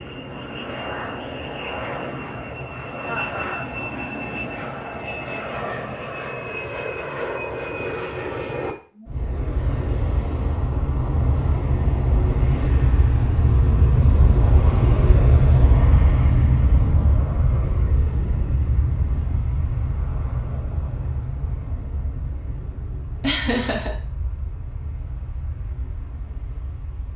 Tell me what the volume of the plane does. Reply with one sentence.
The volume of the plane goes up, then down.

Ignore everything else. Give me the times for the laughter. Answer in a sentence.
The laughter can be heard from 3.0 to 3.7 s and from 23.2 to 23.9 s.